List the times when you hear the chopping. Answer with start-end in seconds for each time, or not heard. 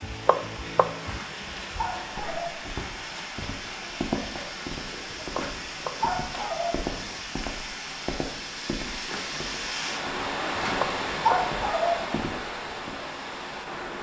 0.0-1.2, 5.2-6.2, 10.6-11.6.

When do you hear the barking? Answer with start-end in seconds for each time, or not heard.
1.0-2.6, 5.2-7.2, 10.4-12.2.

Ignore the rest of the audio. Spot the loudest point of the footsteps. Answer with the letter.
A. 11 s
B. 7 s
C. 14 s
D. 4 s
D.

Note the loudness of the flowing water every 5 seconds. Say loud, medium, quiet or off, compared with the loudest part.
medium, loud, loud.